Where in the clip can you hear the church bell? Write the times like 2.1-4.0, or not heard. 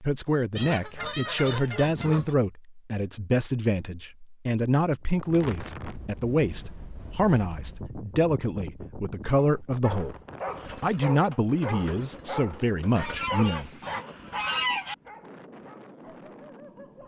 not heard.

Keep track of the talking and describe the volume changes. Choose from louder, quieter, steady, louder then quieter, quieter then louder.
steady.